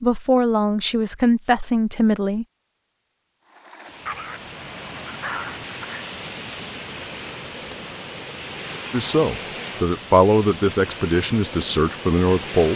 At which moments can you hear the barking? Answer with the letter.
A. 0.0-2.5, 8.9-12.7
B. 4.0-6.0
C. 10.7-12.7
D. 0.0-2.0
B.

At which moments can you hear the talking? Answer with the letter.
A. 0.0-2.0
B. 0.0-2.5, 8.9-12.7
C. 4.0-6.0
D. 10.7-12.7
B.